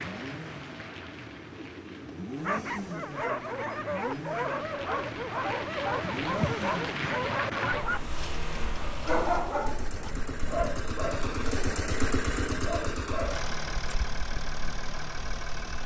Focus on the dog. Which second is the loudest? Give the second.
9 s.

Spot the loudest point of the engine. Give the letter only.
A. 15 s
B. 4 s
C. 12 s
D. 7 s
C.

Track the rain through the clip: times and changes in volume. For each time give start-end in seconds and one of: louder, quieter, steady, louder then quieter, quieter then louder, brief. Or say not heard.
0.0-15.8 louder then quieter.